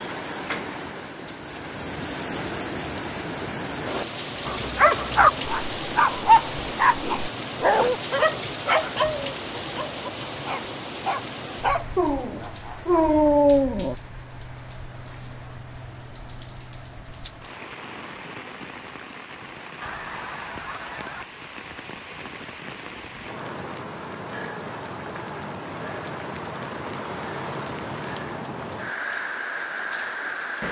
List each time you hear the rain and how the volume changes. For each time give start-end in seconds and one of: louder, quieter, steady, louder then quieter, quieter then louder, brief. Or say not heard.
0.0-30.6 quieter then louder.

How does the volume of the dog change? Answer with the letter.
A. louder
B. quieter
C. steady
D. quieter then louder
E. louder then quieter
D.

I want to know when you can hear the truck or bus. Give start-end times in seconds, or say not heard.
not heard.